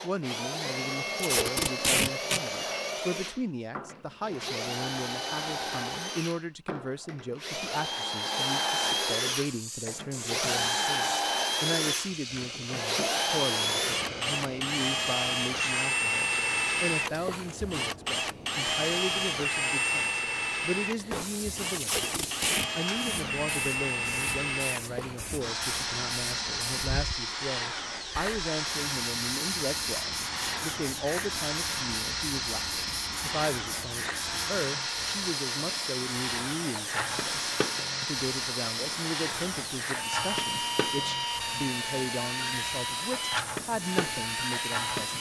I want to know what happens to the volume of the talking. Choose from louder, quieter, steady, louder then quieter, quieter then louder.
steady.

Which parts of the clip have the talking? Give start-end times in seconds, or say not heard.
0.0-45.1.